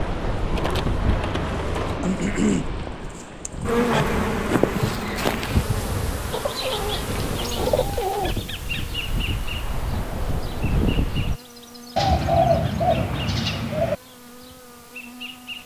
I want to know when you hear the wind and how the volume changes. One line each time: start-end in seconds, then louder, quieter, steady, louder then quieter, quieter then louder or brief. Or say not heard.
0.0-11.4 quieter then louder.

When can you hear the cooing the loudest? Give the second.
12 s.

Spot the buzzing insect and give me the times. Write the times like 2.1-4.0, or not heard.
0.0-15.6.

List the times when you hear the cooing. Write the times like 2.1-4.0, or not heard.
0.5-2.0, 6.3-8.3, 11.9-13.9.